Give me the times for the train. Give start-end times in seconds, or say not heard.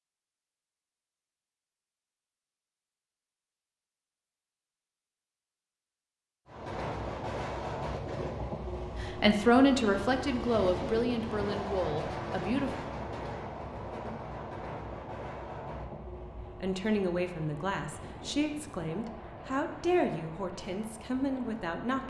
6.5-22.0.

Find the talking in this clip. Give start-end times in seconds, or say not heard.
9.0-12.8, 16.4-22.0.